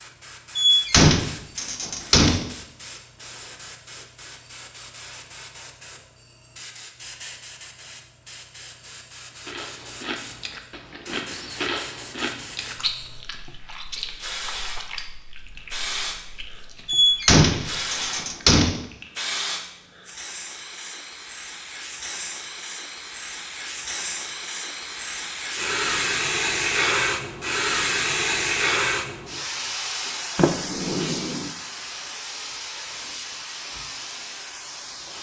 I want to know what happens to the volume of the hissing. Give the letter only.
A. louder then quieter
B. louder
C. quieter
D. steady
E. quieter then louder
B.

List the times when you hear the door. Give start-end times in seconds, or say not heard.
0.6-2.5, 16.9-18.9, 30.4-31.5.